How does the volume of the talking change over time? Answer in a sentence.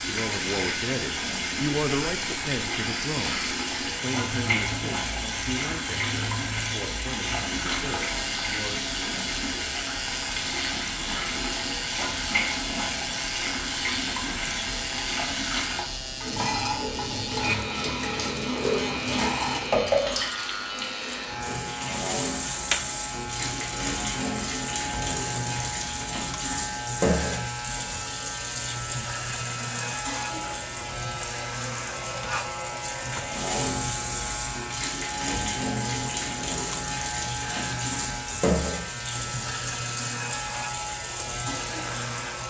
The loudness of the talking goes down.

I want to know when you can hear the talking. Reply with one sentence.
The talking can be heard from 0.1 to 9.2 s.